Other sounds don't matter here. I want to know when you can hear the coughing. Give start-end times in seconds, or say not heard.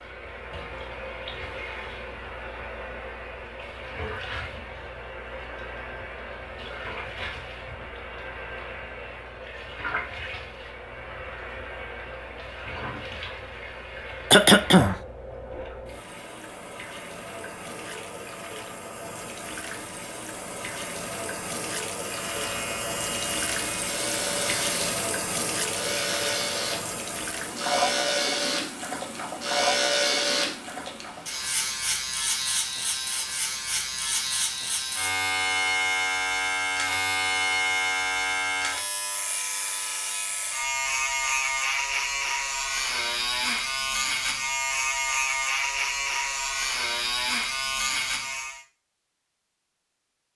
14.3-14.9.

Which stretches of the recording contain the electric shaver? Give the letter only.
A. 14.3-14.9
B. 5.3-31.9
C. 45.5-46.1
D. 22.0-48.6
D.